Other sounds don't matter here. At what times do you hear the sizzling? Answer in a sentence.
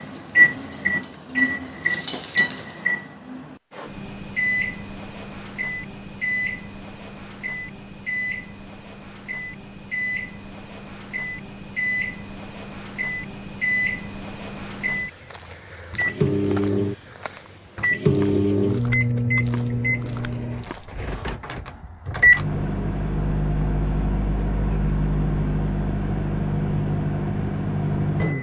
You can hear the sizzling from 0.0 to 2.8 s.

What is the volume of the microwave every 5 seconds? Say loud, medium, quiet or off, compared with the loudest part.
loud, medium, medium, loud, loud, loud.